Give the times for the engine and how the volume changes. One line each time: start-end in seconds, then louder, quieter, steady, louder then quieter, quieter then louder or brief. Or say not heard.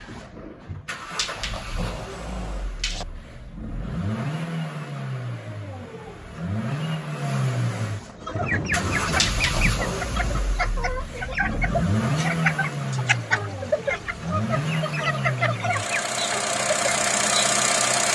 0.0-18.1 louder.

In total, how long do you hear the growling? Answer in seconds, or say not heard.
3 s.